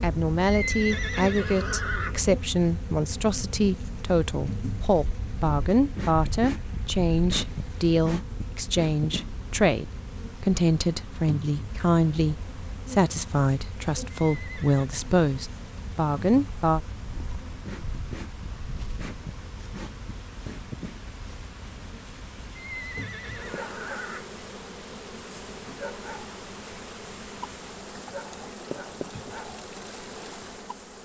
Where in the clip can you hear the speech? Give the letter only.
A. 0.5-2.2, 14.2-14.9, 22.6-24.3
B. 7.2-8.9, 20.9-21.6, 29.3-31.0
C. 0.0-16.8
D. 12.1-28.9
C.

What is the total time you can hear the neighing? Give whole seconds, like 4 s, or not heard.
4 s.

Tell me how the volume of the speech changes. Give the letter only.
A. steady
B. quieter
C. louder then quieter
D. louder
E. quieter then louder
A.